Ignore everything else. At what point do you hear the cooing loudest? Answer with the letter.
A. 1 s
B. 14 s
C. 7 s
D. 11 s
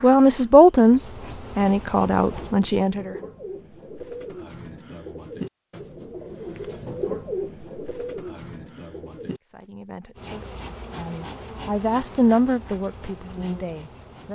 C.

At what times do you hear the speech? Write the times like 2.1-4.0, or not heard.
0.0-3.1, 9.5-14.3.